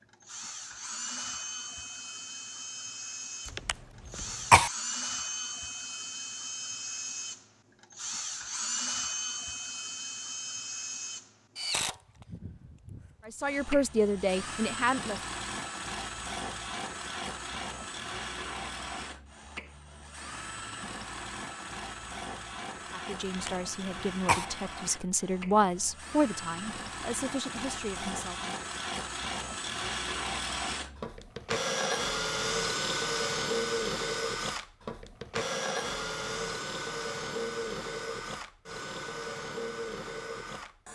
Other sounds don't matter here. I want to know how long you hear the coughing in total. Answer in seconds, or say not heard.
2 s.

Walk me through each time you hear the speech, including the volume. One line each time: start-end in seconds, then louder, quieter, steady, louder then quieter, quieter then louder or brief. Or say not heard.
13.2-15.2 brief
22.9-28.6 louder then quieter.